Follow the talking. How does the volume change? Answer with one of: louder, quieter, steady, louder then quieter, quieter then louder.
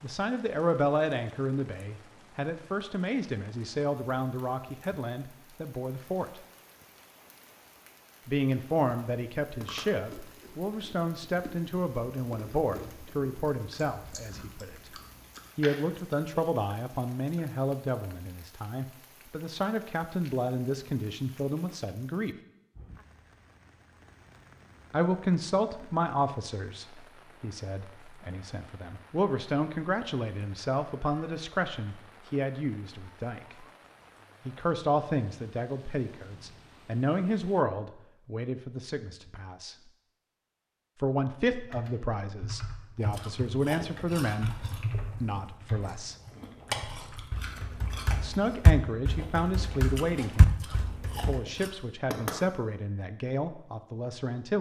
steady.